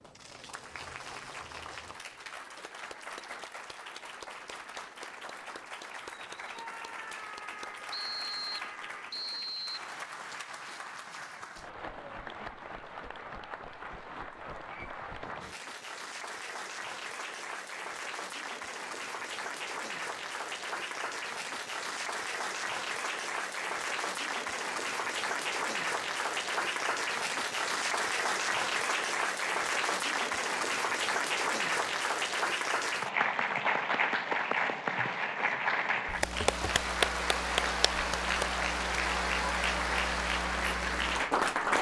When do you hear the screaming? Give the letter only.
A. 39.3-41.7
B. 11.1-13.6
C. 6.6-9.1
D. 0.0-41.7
C.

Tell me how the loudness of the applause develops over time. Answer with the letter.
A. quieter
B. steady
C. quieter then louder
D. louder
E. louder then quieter
D.